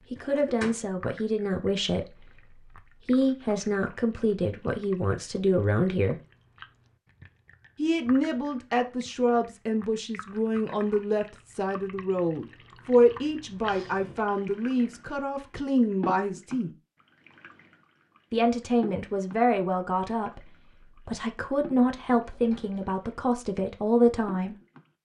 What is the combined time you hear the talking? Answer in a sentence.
The talking can be heard for 21 seconds in total.